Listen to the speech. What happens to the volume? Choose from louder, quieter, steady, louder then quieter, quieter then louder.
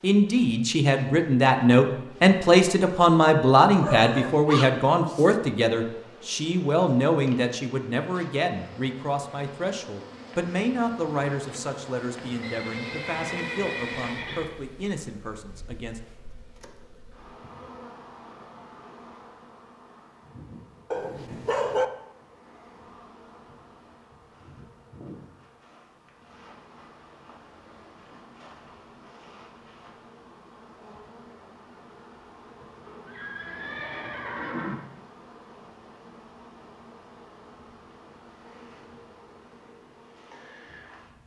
quieter.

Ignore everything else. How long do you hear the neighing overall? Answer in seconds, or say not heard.
4 s.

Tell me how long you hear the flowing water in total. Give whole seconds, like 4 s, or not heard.
not heard.